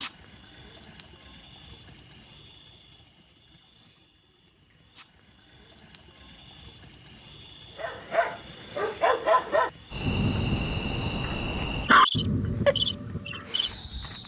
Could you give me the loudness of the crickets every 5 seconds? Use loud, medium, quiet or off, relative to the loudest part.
medium, loud, loud.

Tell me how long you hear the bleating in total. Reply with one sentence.
You can't hear the bleating here.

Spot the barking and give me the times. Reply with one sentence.
The barking can be heard from 7.8 to 13.5 s.